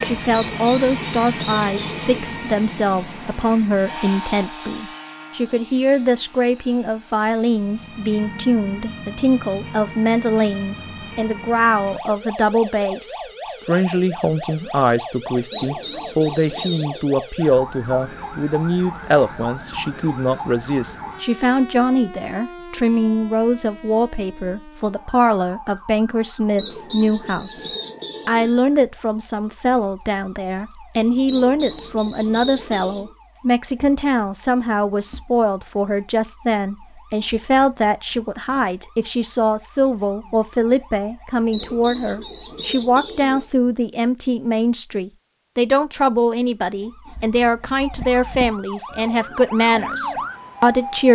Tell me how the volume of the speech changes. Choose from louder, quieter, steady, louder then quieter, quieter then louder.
steady.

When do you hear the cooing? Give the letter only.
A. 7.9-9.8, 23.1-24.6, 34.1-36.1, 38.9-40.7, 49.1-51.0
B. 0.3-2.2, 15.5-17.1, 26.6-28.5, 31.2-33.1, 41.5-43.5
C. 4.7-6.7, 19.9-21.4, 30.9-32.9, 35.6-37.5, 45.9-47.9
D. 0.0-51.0
B.